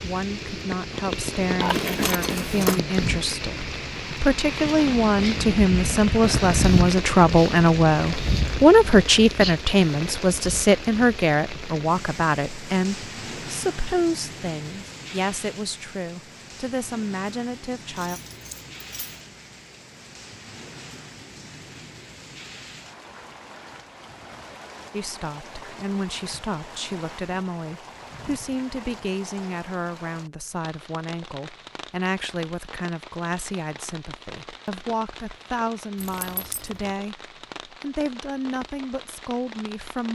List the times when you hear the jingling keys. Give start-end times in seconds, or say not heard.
1.6-2.8, 17.9-19.2, 36.0-36.9.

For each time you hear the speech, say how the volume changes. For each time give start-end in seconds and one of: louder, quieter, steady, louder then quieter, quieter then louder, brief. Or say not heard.
0.0-18.2 louder then quieter
24.9-40.1 steady.